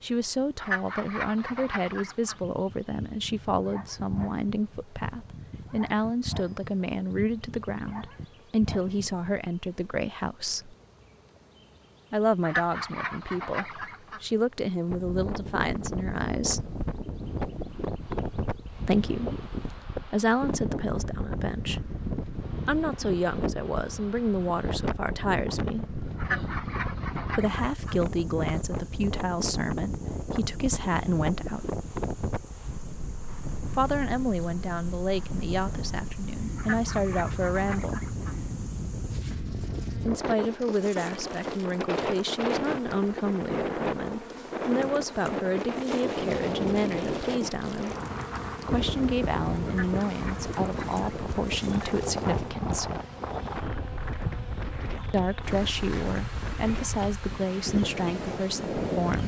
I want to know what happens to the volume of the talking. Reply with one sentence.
The loudness of the talking stays about the same.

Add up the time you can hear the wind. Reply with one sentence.
The wind can be heard for 44 seconds in total.